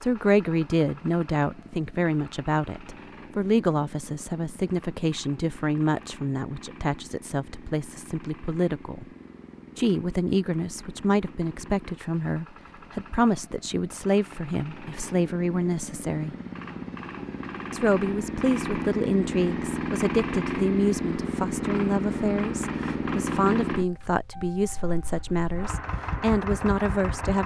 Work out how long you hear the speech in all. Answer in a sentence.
You can hear the speech for 25 seconds altogether.